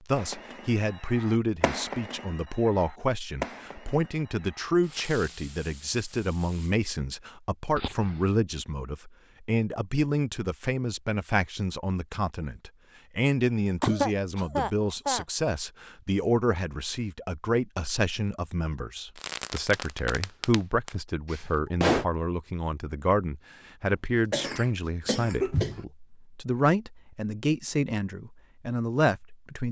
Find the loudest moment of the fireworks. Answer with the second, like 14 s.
22 s.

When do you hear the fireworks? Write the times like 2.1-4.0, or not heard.
0.1-6.8, 19.1-22.1.